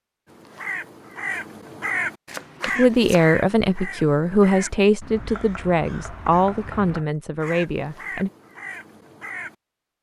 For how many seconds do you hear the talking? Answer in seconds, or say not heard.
6 s.